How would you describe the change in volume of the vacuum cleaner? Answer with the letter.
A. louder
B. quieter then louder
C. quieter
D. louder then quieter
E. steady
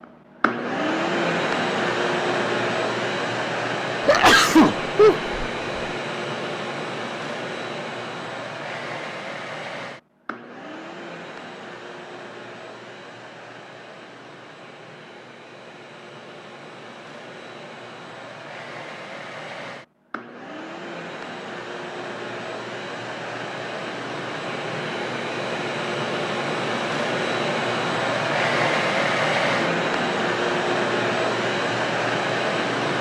B.